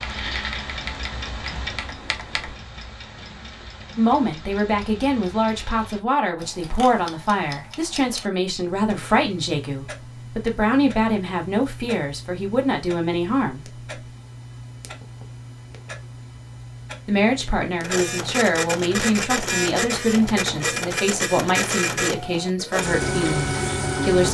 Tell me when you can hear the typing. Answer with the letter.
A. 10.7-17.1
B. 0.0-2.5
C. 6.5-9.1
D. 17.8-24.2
B.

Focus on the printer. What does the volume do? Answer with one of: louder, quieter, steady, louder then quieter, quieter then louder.
steady.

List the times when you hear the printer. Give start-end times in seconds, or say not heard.
17.8-24.2.